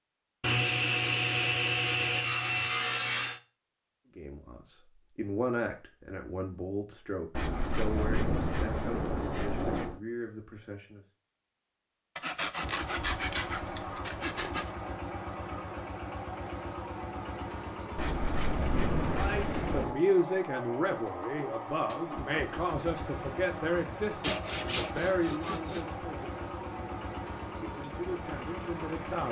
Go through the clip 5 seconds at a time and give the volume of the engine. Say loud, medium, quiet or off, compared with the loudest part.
off, off, loud, loud, loud, loud.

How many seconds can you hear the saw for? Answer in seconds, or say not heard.
12 s.